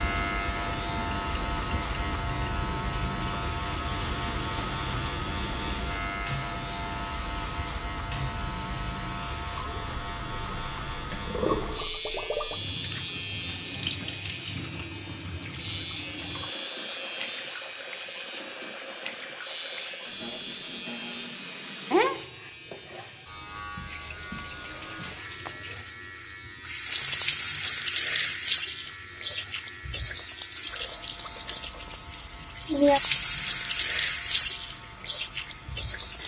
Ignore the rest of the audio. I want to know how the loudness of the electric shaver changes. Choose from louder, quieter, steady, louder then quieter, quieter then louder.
quieter.